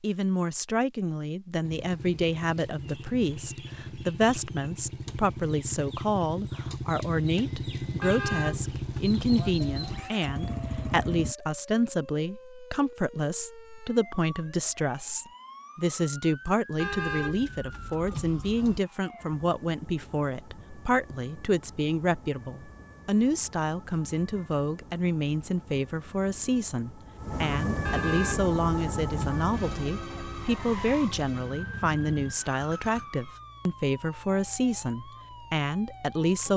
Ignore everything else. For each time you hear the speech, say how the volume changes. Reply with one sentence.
You can hear the speech from 0.0 to 36.5 s, at a steady volume.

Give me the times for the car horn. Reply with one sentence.
The car horn can be heard from 8.0 to 10.0 s, from 16.8 to 18.8 s and from 27.9 to 29.9 s.